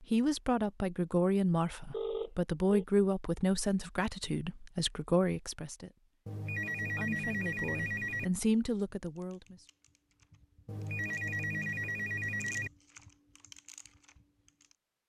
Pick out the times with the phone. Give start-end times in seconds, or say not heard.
1.9-2.9, 6.2-8.2, 10.7-12.7.